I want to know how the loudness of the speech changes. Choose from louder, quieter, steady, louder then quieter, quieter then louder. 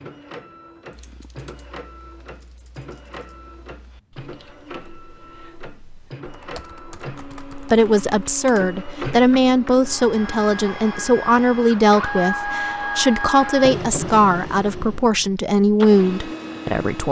steady.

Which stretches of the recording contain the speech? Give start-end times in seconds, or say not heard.
7.5-17.0.